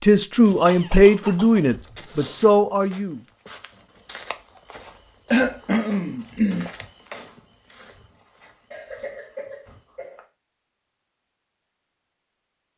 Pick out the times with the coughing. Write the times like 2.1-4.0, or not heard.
0.5-1.8, 5.3-6.7, 8.7-10.2.